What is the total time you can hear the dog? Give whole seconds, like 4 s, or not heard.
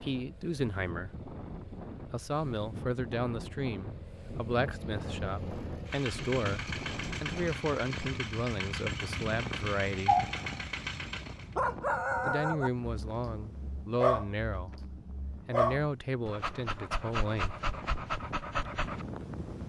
9 s.